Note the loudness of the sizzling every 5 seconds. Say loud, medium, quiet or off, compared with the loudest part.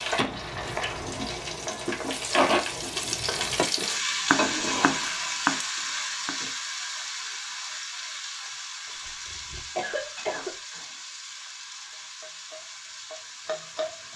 loud, medium, quiet.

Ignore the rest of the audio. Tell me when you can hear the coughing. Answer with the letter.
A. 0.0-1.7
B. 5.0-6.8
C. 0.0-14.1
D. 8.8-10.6
D.